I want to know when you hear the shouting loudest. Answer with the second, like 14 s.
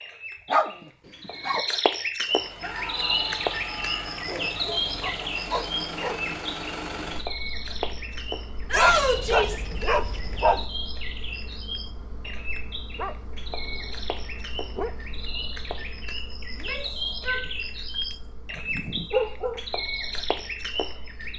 9 s.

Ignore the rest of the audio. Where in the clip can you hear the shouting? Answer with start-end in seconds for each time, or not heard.
2.6-4.2, 8.7-9.7, 16.5-17.5.